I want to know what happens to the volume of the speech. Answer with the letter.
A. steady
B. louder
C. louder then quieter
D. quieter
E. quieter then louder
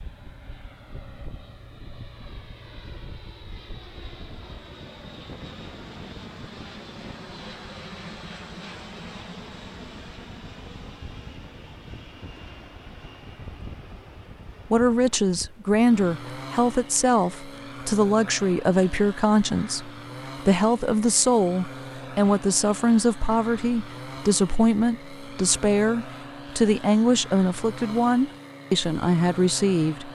A.